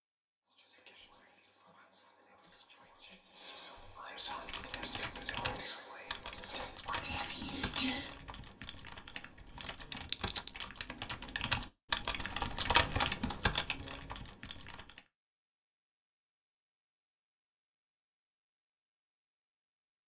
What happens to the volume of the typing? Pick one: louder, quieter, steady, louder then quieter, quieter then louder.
louder.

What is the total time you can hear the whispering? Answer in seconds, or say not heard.
8 s.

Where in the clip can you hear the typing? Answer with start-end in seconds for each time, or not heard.
4.2-15.0.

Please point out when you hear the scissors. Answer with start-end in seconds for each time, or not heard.
9.9-10.6.